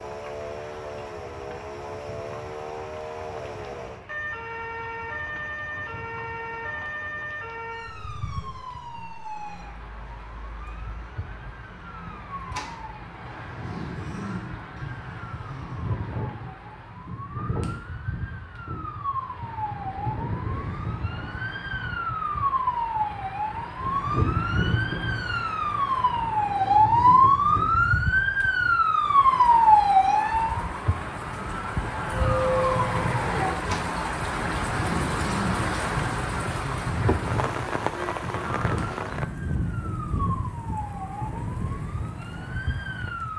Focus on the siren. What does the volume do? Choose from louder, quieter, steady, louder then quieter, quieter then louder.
louder then quieter.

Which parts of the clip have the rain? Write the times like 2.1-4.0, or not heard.
0.0-43.3.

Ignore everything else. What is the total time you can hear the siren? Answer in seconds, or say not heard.
43 s.